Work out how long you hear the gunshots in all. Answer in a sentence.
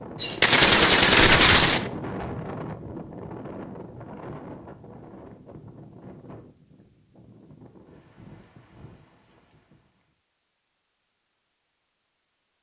The gunshots can be heard for 2 seconds in total.